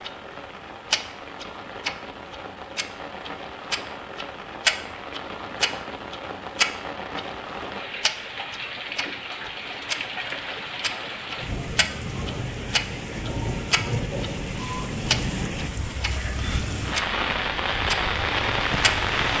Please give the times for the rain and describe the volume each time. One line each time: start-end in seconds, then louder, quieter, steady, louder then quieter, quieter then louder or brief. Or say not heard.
0.0-19.3 louder.